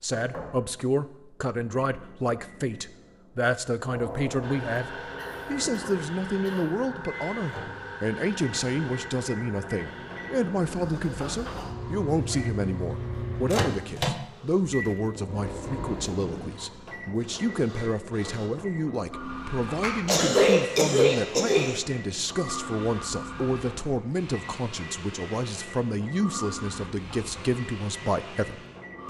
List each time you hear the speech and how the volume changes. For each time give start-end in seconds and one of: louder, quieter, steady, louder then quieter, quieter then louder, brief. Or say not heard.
0.0-29.0 steady.